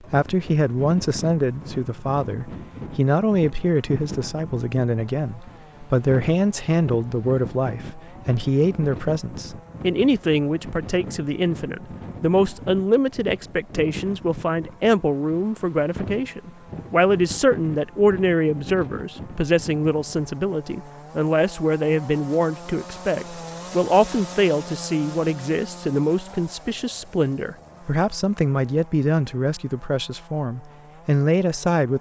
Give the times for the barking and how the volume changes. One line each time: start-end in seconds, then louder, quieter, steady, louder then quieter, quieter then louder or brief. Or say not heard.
not heard.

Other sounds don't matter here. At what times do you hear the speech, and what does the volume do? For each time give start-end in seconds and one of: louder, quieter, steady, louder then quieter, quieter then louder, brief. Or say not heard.
0.1-31.9 steady.